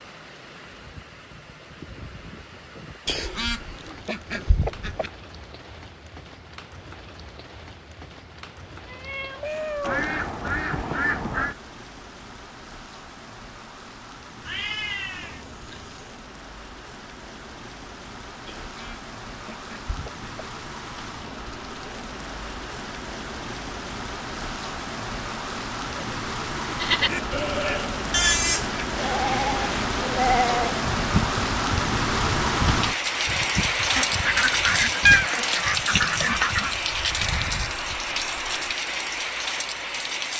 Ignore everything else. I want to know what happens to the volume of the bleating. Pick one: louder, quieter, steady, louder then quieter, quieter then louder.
quieter.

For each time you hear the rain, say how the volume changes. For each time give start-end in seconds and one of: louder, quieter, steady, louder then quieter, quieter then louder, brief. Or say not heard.
0.0-40.3 louder.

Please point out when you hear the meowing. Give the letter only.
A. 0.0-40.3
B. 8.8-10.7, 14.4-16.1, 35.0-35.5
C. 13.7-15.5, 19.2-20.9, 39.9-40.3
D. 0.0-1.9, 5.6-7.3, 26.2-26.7
B.